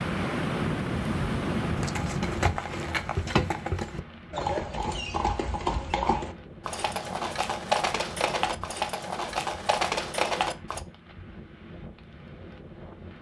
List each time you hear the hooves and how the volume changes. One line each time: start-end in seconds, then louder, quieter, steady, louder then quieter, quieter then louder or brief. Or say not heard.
1.8-10.8 steady.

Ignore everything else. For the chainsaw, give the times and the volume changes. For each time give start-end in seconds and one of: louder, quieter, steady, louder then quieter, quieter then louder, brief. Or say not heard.
not heard.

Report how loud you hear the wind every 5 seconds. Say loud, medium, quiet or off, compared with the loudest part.
loud, quiet, quiet.